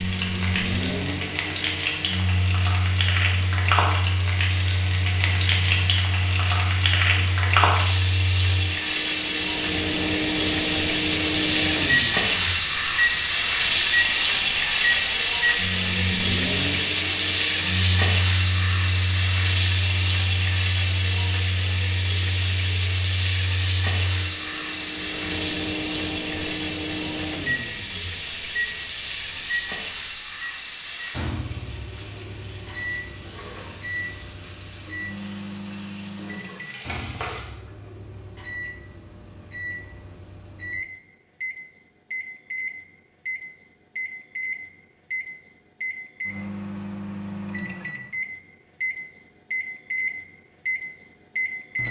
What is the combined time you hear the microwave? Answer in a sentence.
The microwave can be heard for 52 seconds in total.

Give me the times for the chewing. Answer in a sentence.
The chewing can't be heard in this clip.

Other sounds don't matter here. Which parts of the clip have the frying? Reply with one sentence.
The frying can be heard from 0.0 to 37.5 s.